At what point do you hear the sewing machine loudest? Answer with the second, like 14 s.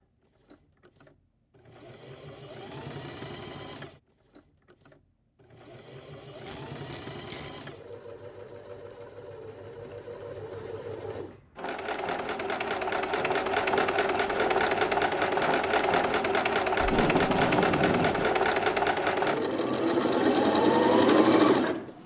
21 s.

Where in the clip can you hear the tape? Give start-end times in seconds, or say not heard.
6.5-7.5, 16.8-18.4.